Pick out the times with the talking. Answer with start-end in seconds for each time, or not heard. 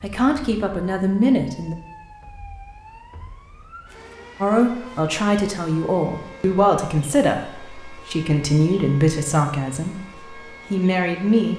0.0-1.8, 4.4-11.5.